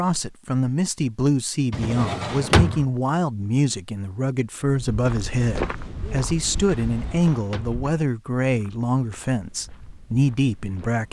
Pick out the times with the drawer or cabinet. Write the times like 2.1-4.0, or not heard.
1.7-2.9, 6.8-7.8.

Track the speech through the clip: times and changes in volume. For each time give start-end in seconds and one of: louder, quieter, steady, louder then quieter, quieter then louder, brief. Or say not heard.
0.0-11.0 steady.